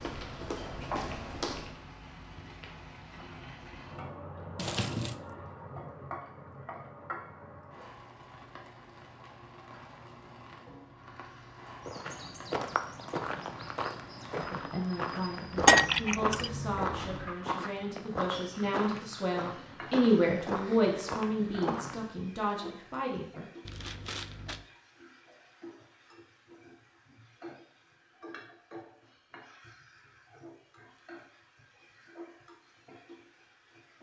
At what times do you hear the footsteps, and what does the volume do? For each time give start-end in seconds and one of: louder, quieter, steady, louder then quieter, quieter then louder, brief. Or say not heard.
0.0-1.8 brief
11.8-22.1 steady.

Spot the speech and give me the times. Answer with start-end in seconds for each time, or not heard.
14.3-23.4.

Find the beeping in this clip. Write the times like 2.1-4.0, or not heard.
not heard.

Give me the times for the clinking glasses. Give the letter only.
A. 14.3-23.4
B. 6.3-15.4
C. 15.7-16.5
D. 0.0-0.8
C.